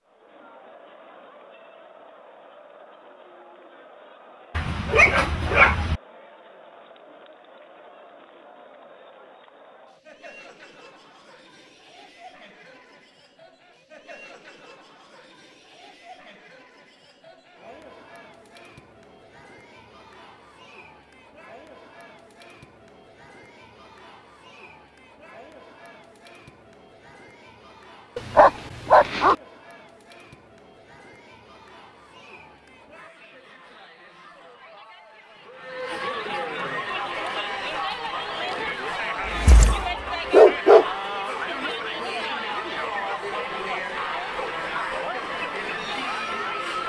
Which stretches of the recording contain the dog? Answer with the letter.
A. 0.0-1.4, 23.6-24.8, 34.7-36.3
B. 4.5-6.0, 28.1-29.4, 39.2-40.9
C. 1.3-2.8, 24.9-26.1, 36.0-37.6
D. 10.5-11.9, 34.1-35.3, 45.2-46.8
B.